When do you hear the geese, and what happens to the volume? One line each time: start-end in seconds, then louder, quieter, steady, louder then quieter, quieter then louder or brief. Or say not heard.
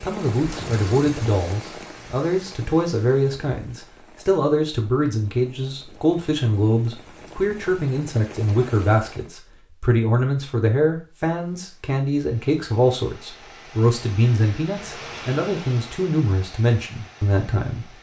not heard.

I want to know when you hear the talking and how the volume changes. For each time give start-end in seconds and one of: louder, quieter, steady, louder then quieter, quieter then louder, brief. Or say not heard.
0.0-17.9 steady.